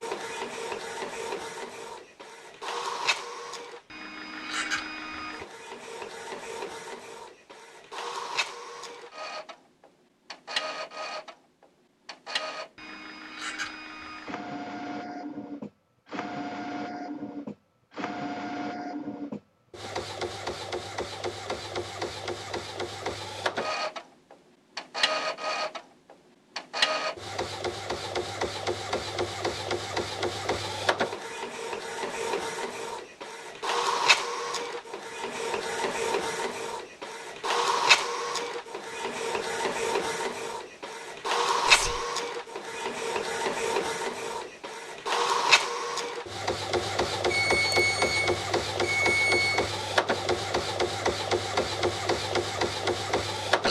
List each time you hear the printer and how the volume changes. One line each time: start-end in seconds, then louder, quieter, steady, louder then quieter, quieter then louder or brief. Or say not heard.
0.0-53.6 louder.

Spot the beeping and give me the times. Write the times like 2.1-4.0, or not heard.
47.3-49.6.